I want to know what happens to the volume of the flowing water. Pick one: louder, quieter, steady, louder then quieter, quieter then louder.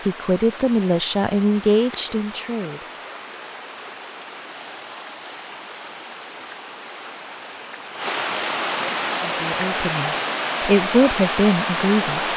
louder.